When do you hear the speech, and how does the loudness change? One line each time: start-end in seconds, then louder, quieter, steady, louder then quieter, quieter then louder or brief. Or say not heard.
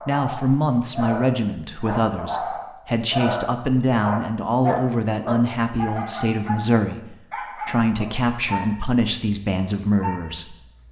0.1-10.6 steady.